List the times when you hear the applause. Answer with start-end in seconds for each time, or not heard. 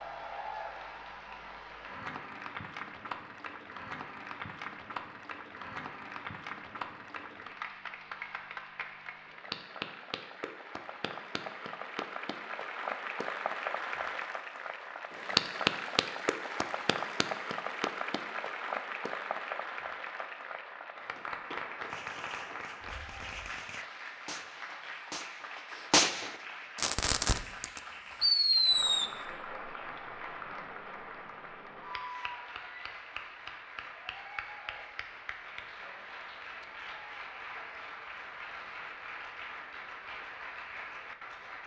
0.0-41.6.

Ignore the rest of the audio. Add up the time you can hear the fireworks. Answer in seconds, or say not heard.
7 s.